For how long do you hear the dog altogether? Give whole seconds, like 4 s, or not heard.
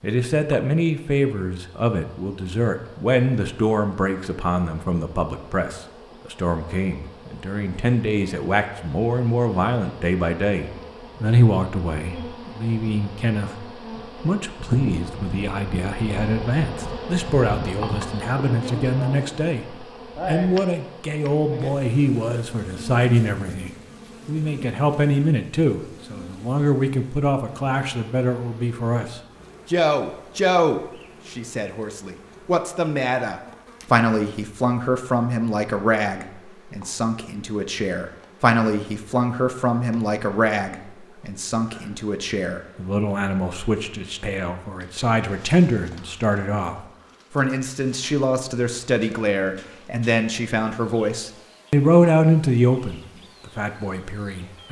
not heard.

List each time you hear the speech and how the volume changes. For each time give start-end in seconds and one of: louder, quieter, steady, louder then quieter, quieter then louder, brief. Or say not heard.
0.0-54.6 steady.